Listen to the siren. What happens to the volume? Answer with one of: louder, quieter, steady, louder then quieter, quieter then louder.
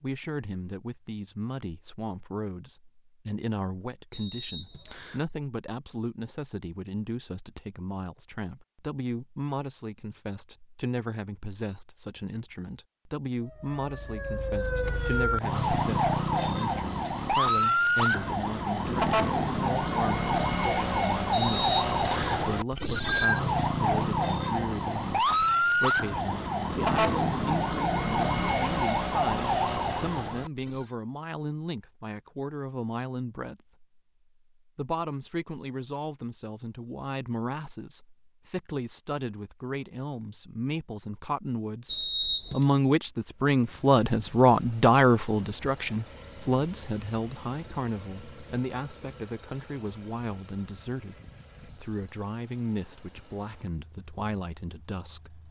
steady.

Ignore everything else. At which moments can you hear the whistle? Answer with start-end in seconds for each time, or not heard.
4.1-5.2, 21.3-22.4, 41.9-42.6.